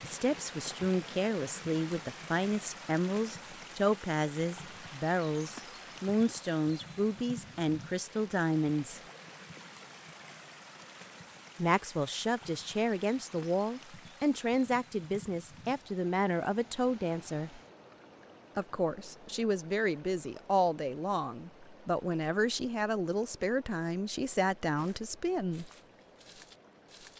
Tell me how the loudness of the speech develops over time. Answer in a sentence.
The volume of the speech stays about the same.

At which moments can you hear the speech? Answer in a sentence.
The speech can be heard from 0.0 to 9.0 s, from 11.6 to 17.6 s and from 18.6 to 25.7 s.